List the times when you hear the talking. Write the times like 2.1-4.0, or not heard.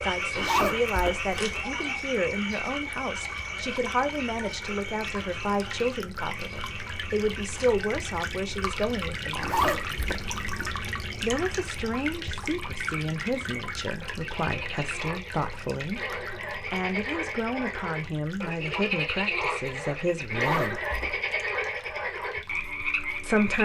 0.0-9.6, 11.2-20.8, 23.2-23.6.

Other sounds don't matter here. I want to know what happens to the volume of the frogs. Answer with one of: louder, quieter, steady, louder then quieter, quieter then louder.
quieter then louder.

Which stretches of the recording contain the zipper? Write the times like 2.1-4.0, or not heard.
0.3-1.6, 9.4-10.8, 20.3-21.2.